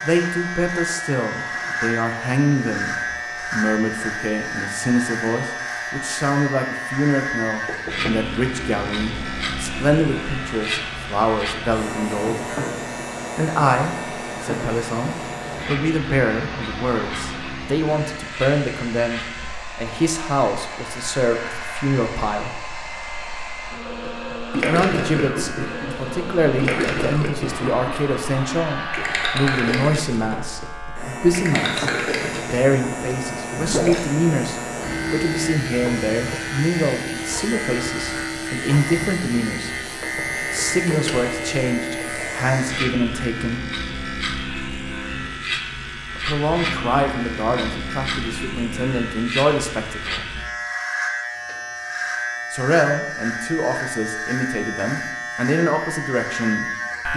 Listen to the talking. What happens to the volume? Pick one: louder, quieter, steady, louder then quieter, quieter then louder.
steady.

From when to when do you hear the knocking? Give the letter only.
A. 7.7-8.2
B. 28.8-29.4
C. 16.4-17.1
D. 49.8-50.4
A.